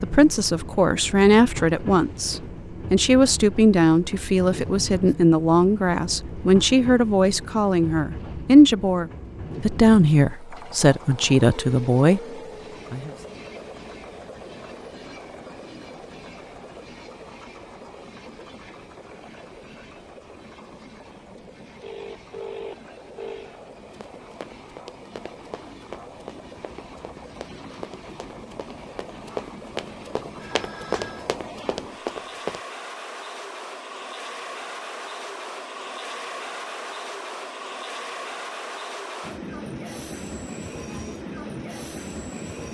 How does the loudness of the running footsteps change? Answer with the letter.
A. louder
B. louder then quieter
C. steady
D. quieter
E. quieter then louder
A.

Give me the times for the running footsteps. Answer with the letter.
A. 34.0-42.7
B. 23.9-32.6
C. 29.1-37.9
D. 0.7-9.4
B.